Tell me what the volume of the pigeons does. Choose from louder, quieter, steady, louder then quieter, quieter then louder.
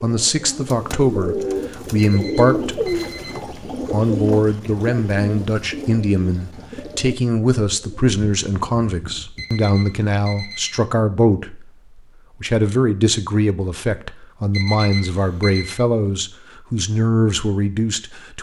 quieter.